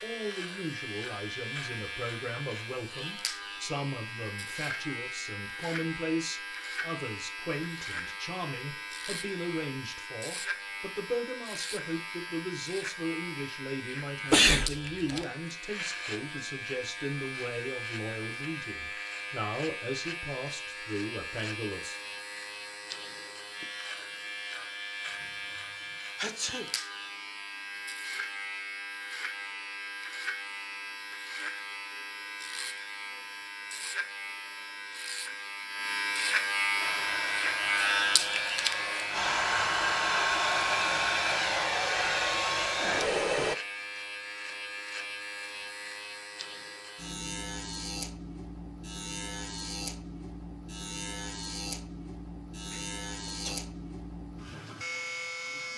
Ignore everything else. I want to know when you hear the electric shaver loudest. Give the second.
38 s.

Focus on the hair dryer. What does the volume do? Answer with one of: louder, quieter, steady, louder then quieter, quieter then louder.
louder.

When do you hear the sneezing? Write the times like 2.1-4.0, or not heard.
14.3-15.2, 26.1-26.7, 52.7-53.6.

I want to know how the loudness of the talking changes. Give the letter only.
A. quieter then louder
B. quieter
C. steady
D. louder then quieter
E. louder
C.